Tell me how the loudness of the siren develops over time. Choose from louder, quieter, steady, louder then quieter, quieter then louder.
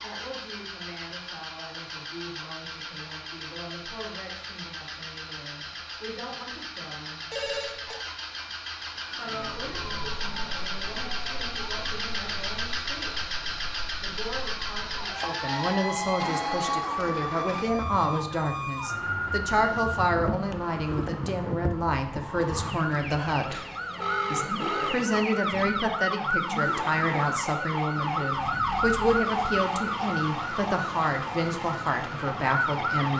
louder.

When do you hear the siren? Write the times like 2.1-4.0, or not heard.
8.9-33.1.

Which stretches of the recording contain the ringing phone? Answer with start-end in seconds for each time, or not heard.
7.3-8.0, 15.2-17.0, 23.4-24.9.